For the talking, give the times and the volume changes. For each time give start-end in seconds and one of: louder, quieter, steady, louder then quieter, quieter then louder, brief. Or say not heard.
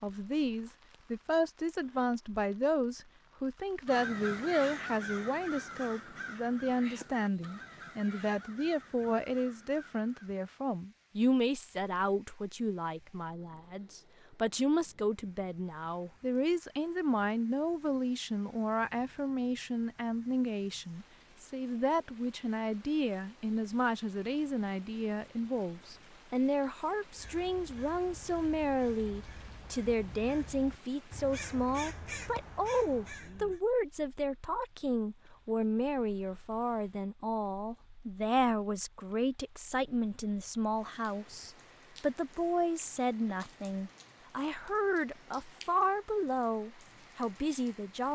0.0-48.1 steady.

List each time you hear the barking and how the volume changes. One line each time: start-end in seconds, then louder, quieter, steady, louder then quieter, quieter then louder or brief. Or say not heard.
not heard.